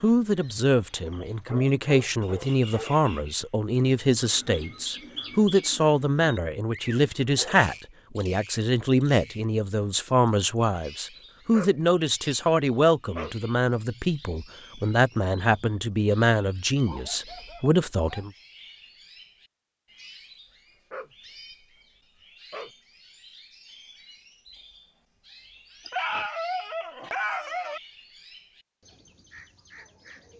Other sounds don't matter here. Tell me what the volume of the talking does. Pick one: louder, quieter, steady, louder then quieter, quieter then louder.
steady.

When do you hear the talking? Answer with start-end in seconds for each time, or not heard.
0.0-18.3.